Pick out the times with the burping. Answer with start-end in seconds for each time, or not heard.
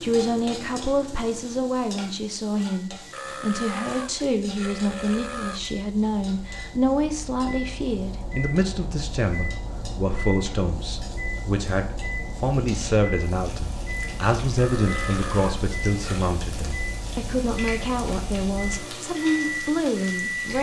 3.1-5.6, 14.6-16.4.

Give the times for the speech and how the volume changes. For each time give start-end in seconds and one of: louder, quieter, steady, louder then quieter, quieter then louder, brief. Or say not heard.
0.0-20.5 steady.